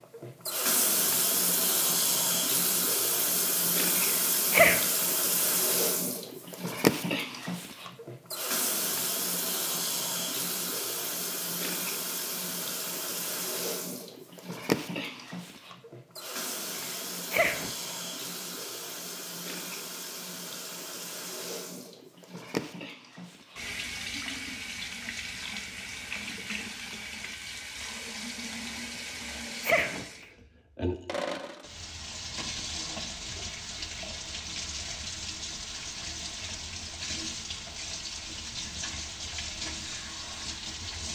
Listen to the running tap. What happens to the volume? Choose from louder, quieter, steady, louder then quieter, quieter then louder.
quieter.